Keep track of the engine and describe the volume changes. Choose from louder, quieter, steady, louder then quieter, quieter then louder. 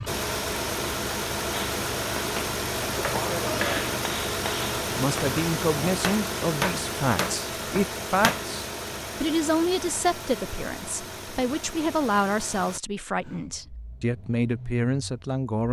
quieter.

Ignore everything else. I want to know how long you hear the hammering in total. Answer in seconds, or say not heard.
7 s.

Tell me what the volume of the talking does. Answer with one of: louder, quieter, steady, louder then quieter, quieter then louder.
steady.